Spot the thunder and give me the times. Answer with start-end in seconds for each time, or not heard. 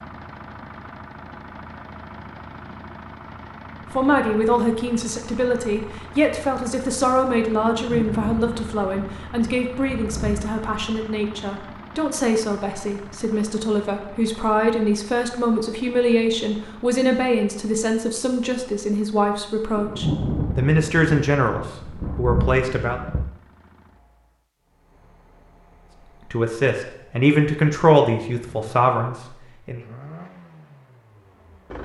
7.6-10.6, 19.8-23.4.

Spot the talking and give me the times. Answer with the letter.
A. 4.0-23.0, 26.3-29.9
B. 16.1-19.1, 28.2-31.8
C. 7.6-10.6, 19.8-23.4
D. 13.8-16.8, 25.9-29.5
A.